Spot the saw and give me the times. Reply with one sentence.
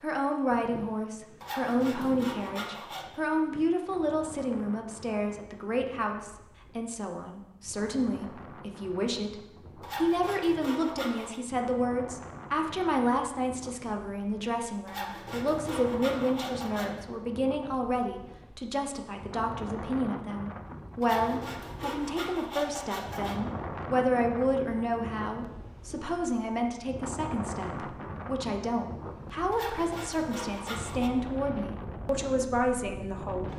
The saw can be heard from 1.4 to 3.2 s, from 9.8 to 11.4 s, from 14.8 to 17.0 s, from 21.0 to 23.4 s and from 29.5 to 31.1 s.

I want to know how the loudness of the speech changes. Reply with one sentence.
The loudness of the speech stays about the same.